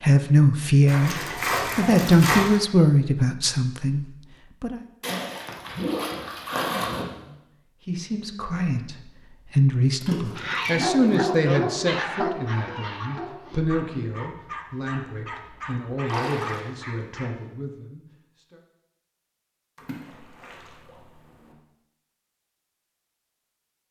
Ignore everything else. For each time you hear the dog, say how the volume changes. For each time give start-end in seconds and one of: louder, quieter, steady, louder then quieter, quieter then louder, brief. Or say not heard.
10.3-17.3 quieter.